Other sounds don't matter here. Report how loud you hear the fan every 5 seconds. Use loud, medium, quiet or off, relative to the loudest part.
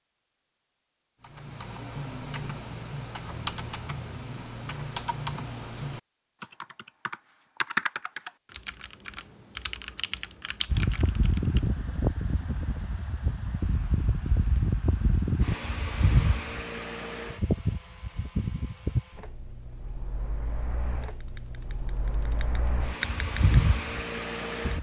off, off, loud, loud, loud.